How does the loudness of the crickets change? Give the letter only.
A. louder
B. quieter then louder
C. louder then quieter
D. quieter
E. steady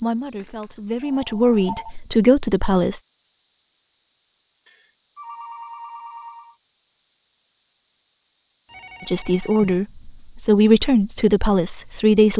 E.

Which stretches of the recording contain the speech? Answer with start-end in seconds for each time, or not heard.
0.0-3.0, 9.1-12.3.